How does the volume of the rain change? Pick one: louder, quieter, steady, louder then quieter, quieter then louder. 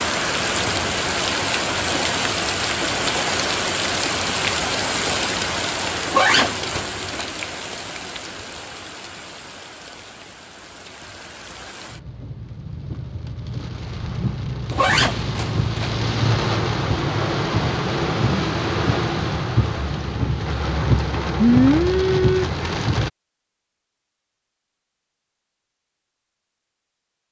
quieter then louder.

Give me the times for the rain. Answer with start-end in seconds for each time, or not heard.
0.0-23.1.